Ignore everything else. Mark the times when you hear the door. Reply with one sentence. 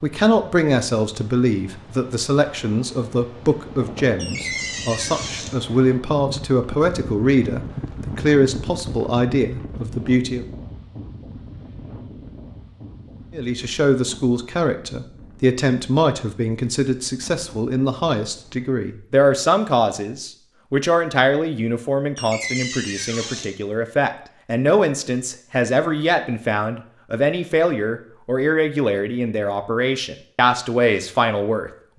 The door can be heard from 4.2 to 5.5 s and from 22.1 to 23.6 s.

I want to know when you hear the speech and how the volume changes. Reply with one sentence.
The speech can be heard from 0.0 to 10.4 s, at a steady volume; and from 13.3 to 31.9 s, at a steady volume.